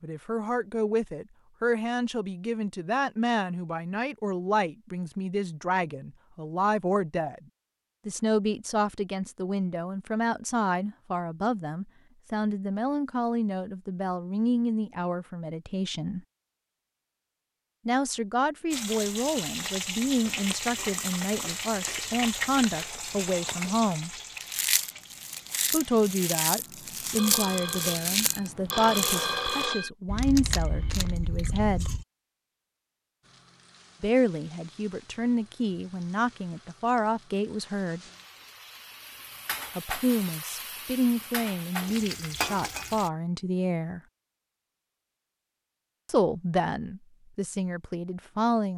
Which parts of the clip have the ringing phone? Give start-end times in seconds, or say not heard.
27.1-29.9.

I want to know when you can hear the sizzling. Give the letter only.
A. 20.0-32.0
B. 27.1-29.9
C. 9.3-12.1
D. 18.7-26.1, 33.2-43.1
D.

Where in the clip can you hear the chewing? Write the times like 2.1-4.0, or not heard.
20.0-32.0.